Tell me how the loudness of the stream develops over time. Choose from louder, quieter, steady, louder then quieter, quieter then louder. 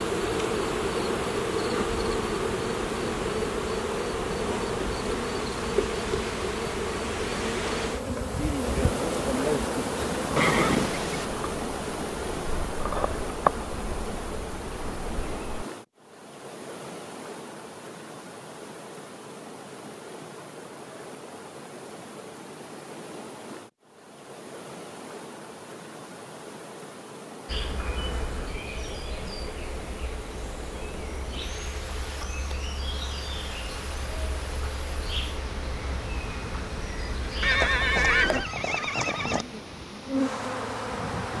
quieter.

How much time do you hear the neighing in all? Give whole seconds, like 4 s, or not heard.
3 s.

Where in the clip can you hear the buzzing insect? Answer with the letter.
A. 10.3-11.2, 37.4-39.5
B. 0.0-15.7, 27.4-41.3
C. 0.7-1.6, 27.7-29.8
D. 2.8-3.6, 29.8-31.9
B.